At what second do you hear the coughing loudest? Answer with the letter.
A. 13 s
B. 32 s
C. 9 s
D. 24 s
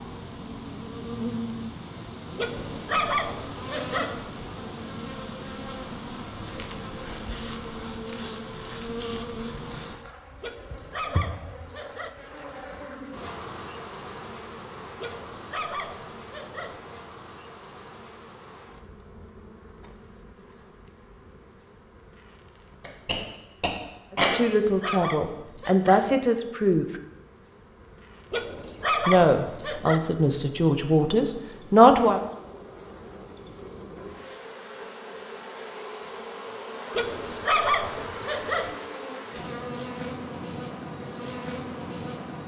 D.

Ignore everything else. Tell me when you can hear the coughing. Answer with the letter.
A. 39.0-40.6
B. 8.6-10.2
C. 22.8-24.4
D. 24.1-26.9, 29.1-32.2
C.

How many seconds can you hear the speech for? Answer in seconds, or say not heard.
6 s.